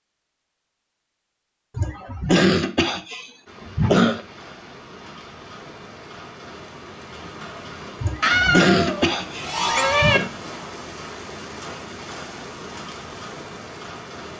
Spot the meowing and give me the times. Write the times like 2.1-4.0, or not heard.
8.2-10.2.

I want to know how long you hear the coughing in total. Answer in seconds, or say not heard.
5 s.